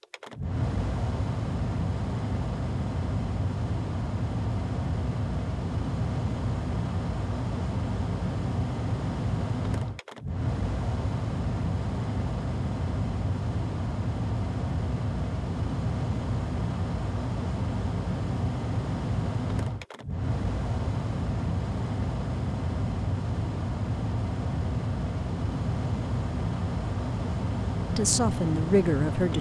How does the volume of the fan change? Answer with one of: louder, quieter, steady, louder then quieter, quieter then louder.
steady.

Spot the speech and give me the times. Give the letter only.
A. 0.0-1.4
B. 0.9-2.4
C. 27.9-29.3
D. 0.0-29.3
C.